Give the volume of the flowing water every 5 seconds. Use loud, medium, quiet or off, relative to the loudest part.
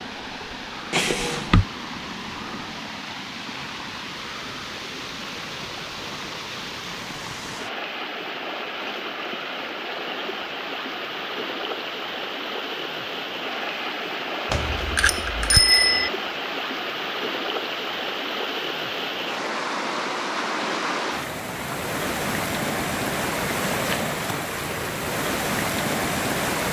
medium, medium, medium, loud, loud, loud.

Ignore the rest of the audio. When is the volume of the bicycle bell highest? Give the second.
16 s.